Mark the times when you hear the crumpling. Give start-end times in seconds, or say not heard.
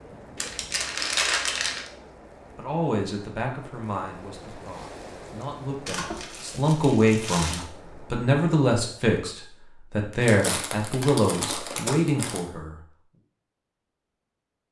0.3-1.9, 5.8-7.7, 10.2-12.4.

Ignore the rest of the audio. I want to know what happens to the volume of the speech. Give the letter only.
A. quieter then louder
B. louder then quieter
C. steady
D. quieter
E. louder
E.